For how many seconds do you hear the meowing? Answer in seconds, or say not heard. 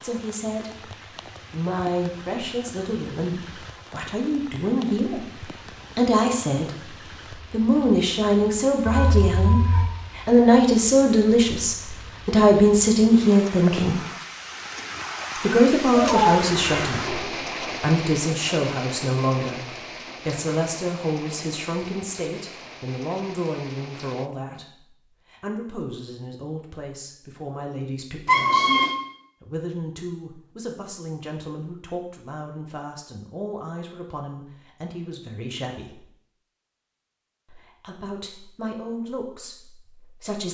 3 s.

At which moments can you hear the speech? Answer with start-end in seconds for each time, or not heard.
0.0-14.0, 15.4-28.7, 29.4-36.0, 37.5-40.4.